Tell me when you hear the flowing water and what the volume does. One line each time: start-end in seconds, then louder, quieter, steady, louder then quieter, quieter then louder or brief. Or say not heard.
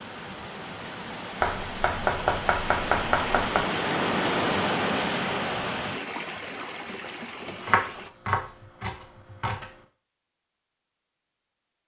0.0-8.1 louder then quieter.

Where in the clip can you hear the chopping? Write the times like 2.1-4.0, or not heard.
1.4-3.6, 7.5-9.7.